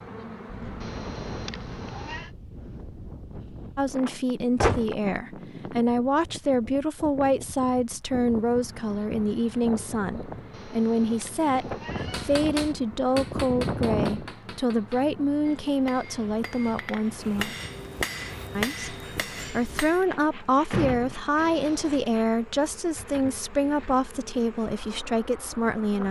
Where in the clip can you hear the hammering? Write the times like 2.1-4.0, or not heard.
12.1-20.1.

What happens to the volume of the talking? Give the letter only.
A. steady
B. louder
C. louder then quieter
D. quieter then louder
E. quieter
A.